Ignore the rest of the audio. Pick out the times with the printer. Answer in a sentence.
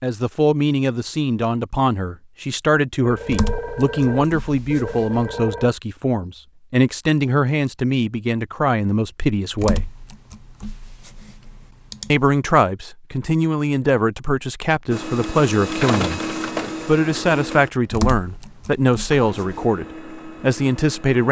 You can hear the printer from 14.9 to 21.2 s.